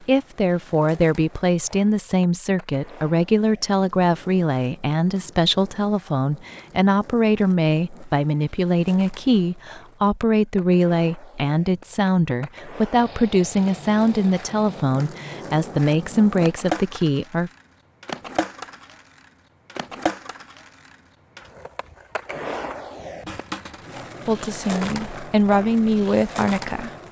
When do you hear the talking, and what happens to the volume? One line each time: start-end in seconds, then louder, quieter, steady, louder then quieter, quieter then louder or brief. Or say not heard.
0.1-17.5 steady
24.2-26.9 brief.